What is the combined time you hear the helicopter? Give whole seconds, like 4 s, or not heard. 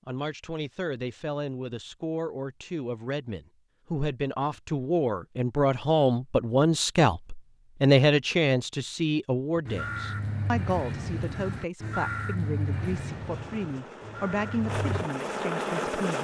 3 s.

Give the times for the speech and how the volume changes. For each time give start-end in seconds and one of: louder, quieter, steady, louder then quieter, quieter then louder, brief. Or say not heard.
0.1-16.2 louder then quieter.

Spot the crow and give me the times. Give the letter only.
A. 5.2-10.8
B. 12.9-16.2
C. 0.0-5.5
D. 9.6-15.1
D.